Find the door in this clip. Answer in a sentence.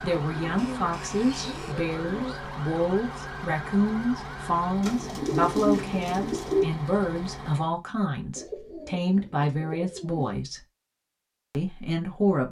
The door can't be heard in this clip.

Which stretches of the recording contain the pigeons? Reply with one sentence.
You can hear the pigeons from 0.3 to 2.4 s, from 4.8 to 6.7 s and from 8.3 to 10.4 s.